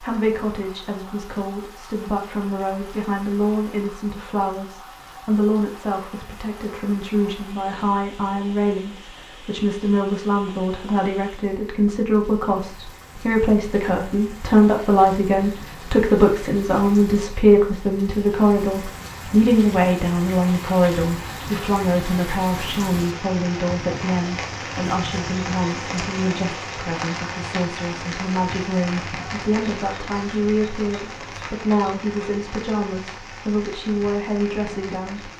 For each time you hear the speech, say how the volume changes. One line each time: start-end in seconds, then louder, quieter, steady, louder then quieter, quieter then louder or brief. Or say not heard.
0.0-35.3 louder then quieter.